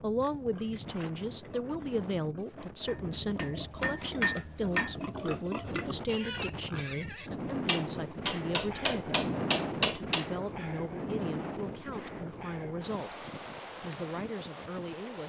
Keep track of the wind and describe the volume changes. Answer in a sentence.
The loudness of the wind goes up, then down.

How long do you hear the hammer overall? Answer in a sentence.
The hammer can be heard for 5 seconds in total.